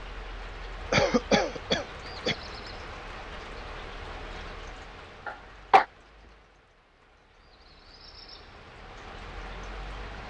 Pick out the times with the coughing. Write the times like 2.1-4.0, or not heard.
0.9-2.4, 5.2-5.8.